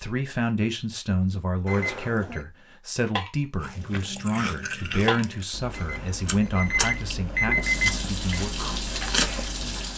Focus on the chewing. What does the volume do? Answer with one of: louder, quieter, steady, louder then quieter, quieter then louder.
quieter then louder.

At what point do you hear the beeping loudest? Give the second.
8 s.